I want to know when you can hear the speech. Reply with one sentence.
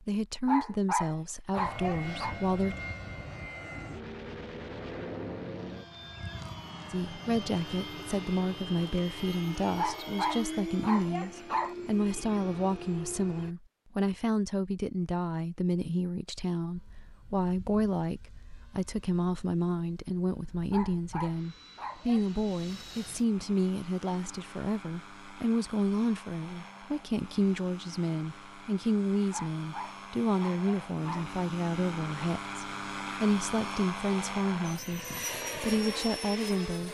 You can hear the speech from 0.0 to 2.8 s and from 6.9 to 36.8 s.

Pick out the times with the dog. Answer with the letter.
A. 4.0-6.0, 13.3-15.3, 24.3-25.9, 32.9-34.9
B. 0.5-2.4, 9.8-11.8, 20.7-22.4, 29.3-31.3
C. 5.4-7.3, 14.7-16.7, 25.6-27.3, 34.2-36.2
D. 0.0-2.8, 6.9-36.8
B.